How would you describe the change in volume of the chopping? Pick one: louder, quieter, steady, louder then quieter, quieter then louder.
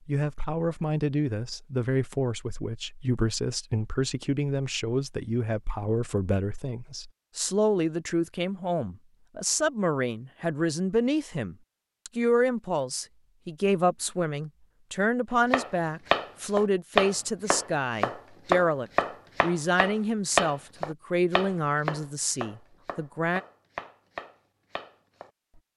quieter.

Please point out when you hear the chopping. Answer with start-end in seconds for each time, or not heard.
15.5-25.6.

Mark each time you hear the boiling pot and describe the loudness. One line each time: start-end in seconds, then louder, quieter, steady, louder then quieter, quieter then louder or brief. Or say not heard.
not heard.